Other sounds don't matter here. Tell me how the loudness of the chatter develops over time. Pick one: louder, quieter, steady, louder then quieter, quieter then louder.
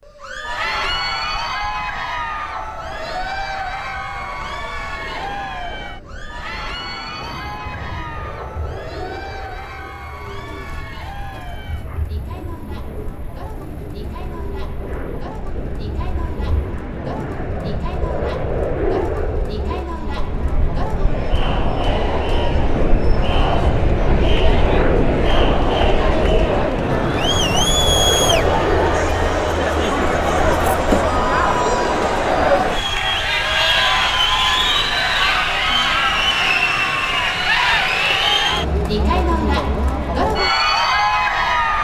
quieter then louder.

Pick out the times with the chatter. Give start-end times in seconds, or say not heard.
0.1-41.8.